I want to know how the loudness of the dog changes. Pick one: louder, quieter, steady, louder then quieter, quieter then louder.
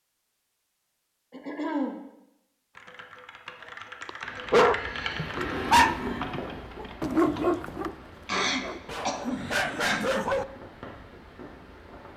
quieter then louder.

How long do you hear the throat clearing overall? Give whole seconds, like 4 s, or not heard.
4 s.